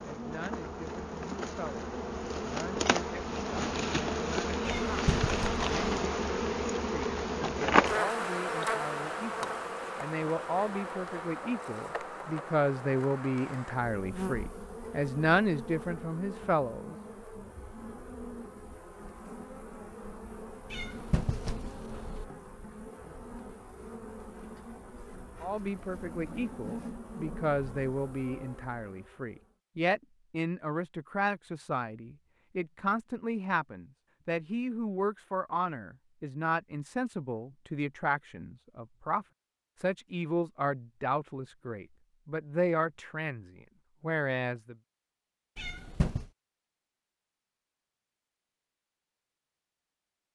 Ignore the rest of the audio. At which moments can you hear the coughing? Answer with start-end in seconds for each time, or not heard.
not heard.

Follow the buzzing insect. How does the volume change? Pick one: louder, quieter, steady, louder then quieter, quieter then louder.
quieter.